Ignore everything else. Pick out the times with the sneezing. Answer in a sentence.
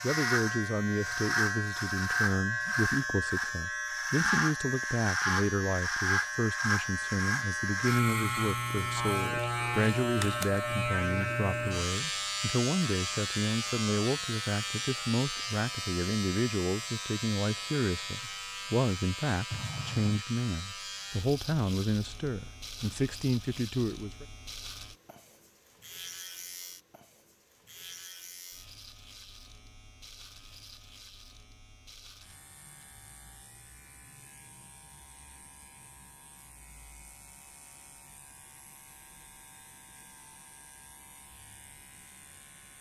You can hear the sneezing from 19.5 to 20.2 s.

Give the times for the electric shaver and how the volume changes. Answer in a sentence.
The electric shaver can be heard from 0.0 to 42.7 s, getting quieter.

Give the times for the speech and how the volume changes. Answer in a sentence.
You can hear the speech from 0.0 to 24.2 s, at a steady volume.